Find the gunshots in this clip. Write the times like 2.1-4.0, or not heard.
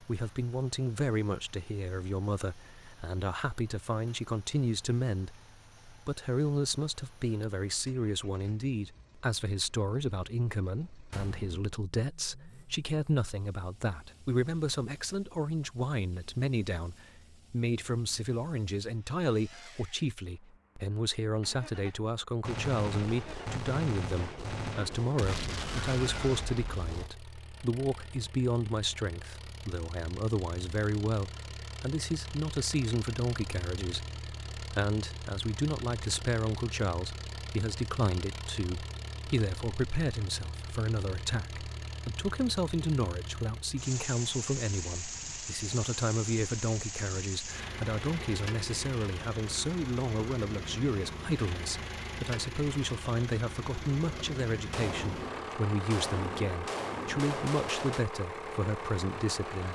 11.1-11.8, 22.4-27.1, 54.0-58.0.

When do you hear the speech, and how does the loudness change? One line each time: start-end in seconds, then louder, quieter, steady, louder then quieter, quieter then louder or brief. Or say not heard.
0.0-59.6 steady.